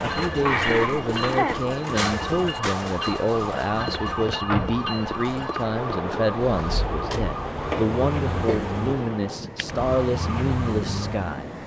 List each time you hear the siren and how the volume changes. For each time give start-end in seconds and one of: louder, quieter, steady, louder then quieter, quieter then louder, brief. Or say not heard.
0.0-11.3 steady.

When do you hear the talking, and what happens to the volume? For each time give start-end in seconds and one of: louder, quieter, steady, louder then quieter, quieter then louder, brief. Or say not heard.
0.0-11.5 steady.